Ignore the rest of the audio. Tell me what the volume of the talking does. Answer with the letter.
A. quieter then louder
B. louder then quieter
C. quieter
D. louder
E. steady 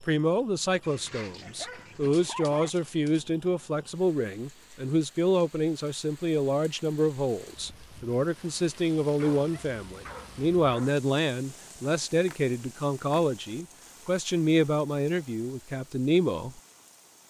E.